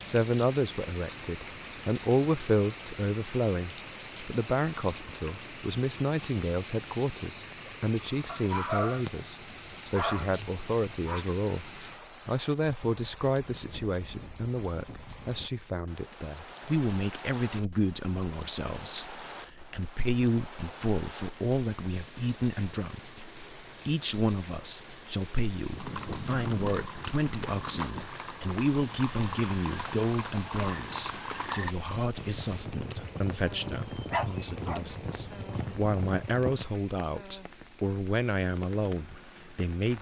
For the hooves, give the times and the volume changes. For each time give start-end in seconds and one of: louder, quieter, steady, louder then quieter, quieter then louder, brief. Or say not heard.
25.7-36.8 steady.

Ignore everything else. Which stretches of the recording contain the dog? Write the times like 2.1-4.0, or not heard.
8.2-11.2, 34.1-34.9.